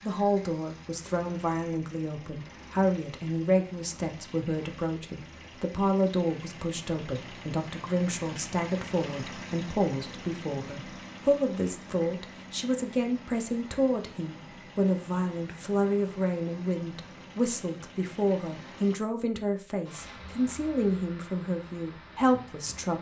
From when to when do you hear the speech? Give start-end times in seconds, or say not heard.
0.0-22.9.